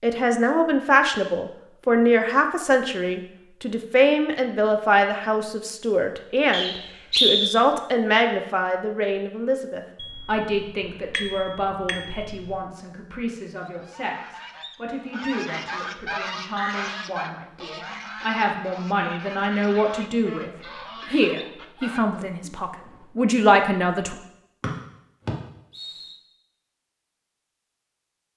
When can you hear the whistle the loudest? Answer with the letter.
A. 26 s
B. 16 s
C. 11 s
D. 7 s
D.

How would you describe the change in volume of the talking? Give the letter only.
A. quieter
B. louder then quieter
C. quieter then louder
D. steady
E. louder
C.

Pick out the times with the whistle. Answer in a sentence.
The whistle can be heard from 6.5 to 7.5 s and from 24.6 to 26.1 s.